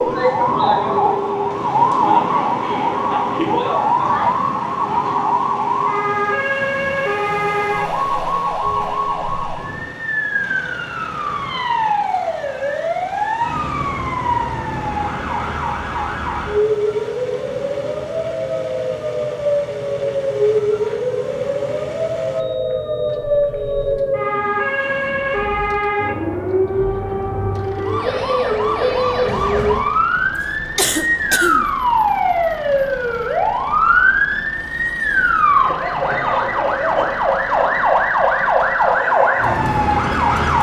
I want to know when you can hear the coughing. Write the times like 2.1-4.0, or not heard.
30.8-31.6.